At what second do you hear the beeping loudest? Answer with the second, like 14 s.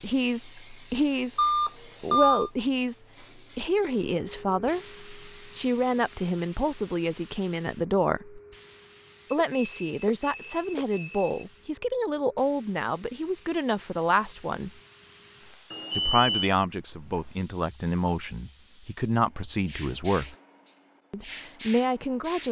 2 s.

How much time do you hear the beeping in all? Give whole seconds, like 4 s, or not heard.
4 s.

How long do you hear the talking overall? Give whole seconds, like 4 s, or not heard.
19 s.